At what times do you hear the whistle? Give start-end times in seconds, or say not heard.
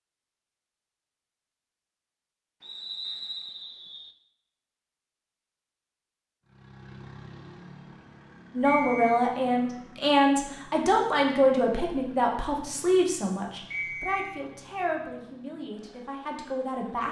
2.6-4.1, 8.7-9.2, 13.7-14.4.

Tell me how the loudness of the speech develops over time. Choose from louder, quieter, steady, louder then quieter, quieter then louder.
quieter.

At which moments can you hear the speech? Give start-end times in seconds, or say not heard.
8.6-17.0.